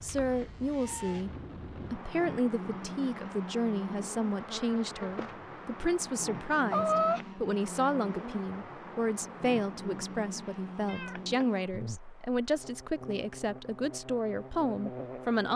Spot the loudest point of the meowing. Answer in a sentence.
The volume of the meowing peaks at 7 seconds.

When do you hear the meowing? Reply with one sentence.
You can hear the meowing from 0.2 to 1.2 s, from 6.7 to 7.3 s and from 10.8 to 11.4 s.